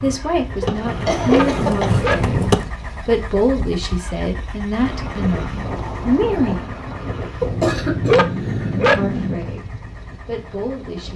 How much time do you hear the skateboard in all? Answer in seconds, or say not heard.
3 s.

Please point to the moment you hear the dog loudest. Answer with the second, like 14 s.
8 s.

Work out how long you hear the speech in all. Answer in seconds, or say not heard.
9 s.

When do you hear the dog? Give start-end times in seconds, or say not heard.
0.6-2.9, 7.4-9.5.